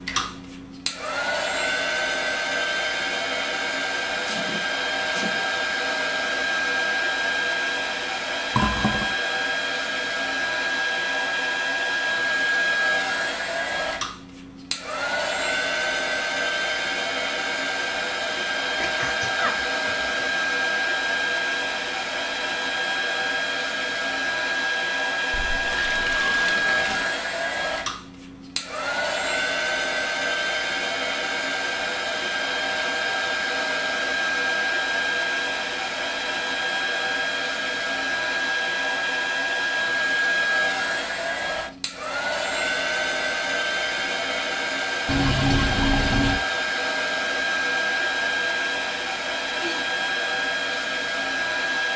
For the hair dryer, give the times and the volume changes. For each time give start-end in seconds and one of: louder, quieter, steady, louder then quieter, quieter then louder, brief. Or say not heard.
0.0-51.9 steady.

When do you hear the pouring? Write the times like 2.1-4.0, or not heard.
8.6-9.1, 25.3-27.1, 45.0-46.4.